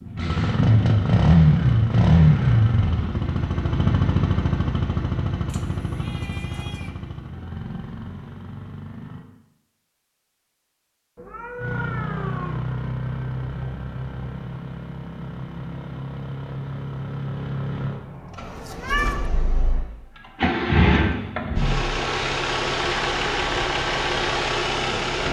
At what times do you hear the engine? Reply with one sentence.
You can hear the engine from 0.0 to 9.2 s and from 11.6 to 25.2 s.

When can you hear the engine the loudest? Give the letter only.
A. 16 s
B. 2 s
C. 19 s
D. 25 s
B.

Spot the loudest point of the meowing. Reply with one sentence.
The volume of the meowing peaks at 19 seconds.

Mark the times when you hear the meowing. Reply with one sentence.
You can hear the meowing from 5.5 to 6.9 s, from 11.2 to 12.7 s and from 18.4 to 19.2 s.